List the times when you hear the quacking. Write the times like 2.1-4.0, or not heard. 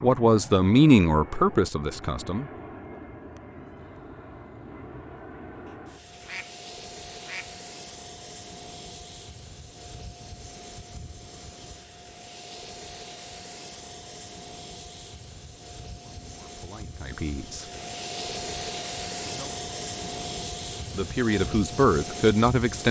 5.7-7.6.